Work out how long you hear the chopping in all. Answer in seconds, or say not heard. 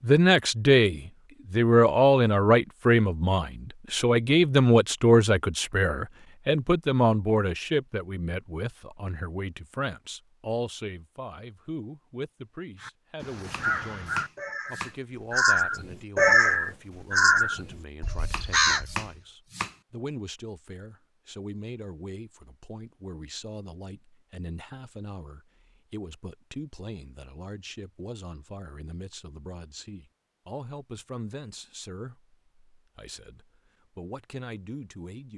3 s.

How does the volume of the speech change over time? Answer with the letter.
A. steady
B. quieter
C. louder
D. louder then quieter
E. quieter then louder
B.